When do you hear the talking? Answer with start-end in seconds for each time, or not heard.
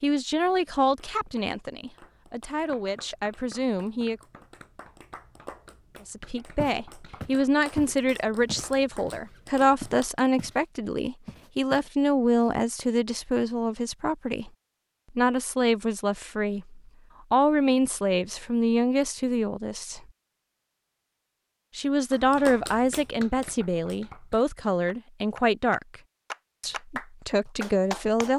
0.0-4.2, 6.0-14.5, 15.2-20.0, 21.8-25.9, 26.6-28.3.